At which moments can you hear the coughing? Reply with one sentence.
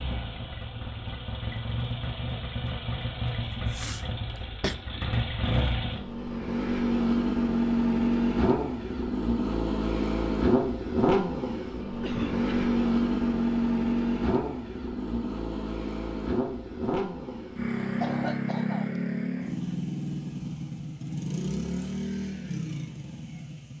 You can hear the coughing from 3.4 to 4.8 s, from 12.0 to 12.4 s and from 18.0 to 19.0 s.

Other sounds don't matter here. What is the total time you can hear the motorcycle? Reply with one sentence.
You can hear the motorcycle for 24 seconds altogether.